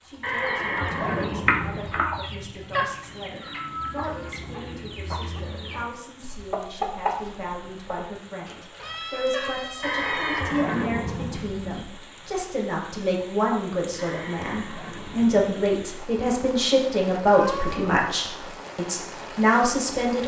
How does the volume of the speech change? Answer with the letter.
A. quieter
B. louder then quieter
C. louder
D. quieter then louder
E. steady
C.